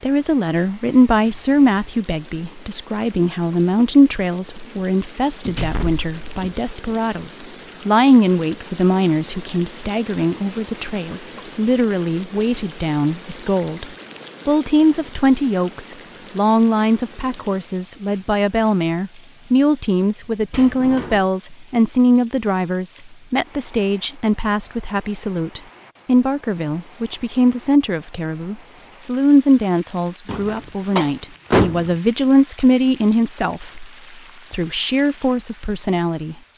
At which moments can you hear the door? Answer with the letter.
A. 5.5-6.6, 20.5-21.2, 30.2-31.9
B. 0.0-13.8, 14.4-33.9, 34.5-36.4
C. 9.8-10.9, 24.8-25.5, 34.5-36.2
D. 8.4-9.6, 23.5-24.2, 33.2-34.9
A.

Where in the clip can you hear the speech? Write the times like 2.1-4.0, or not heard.
0.0-13.8, 14.4-33.9, 34.5-36.4.